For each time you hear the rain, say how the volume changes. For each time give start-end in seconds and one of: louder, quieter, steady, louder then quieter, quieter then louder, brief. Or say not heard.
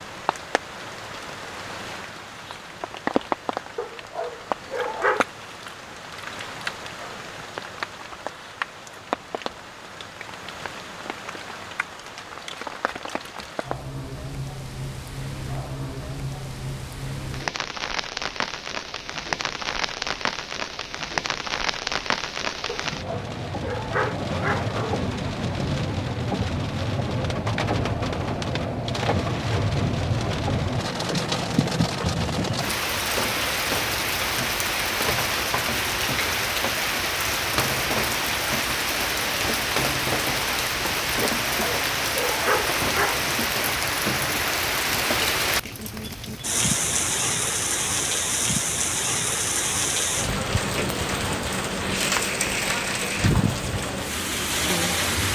0.0-55.3 louder.